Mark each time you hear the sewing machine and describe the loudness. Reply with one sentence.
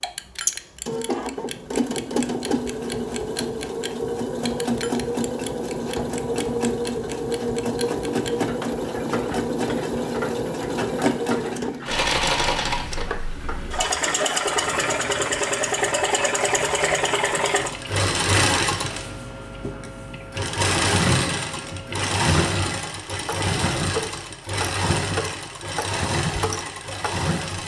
The sewing machine can be heard from 0.0 to 27.6 s, at a steady volume.